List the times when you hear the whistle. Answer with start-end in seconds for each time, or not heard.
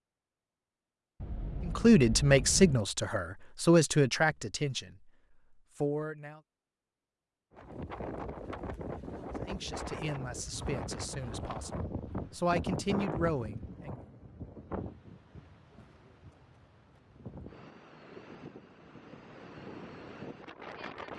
not heard.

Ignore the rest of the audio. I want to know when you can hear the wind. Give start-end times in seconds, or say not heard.
7.5-21.1.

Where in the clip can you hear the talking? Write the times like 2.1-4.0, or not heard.
1.6-4.9, 5.8-6.4, 9.4-14.0.